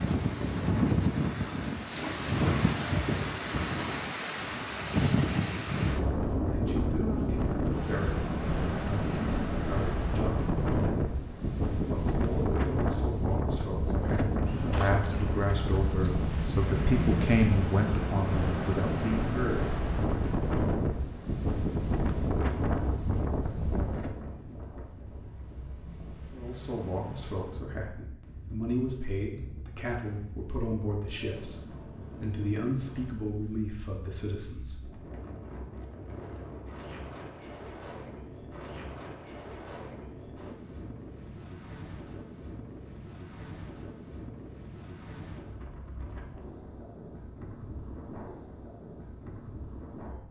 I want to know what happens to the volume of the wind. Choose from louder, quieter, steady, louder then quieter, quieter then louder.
quieter.